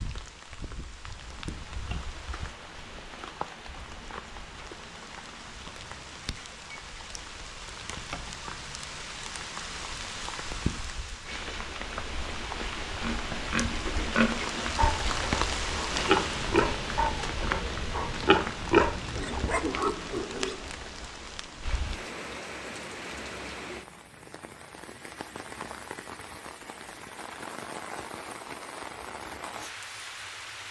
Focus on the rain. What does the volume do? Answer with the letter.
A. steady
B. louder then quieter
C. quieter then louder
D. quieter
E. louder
B.